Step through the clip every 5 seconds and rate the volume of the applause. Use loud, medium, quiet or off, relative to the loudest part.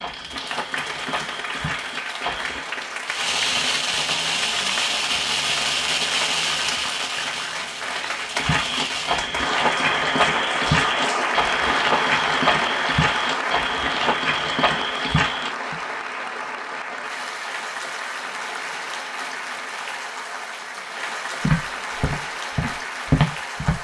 medium, medium, loud, medium, medium.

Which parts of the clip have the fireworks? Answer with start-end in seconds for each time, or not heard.
3.0-9.2.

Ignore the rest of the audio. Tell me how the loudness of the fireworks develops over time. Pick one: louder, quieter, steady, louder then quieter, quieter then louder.
quieter.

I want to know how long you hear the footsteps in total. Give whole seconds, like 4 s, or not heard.
13 s.